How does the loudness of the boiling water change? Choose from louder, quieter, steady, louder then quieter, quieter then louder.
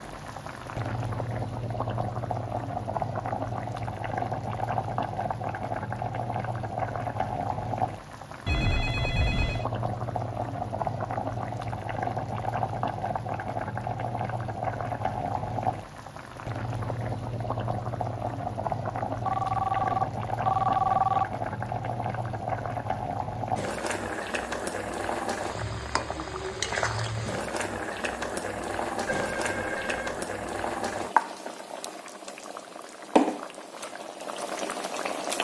steady.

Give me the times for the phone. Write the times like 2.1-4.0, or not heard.
8.4-9.7, 19.2-21.2, 29.1-30.2.